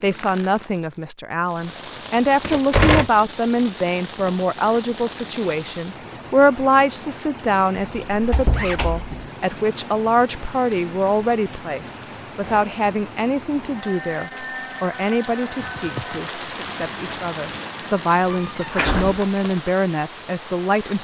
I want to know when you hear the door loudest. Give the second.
3 s.